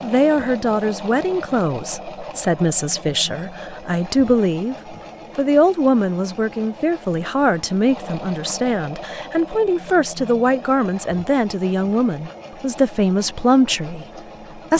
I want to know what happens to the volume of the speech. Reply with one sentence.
The loudness of the speech stays about the same.